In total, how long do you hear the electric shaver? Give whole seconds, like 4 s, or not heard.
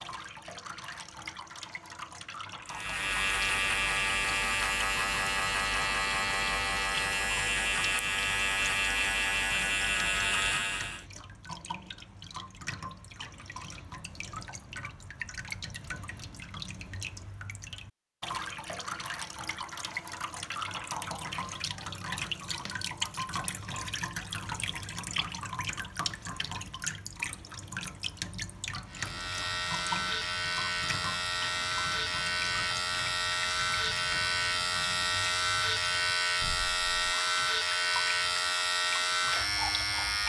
20 s.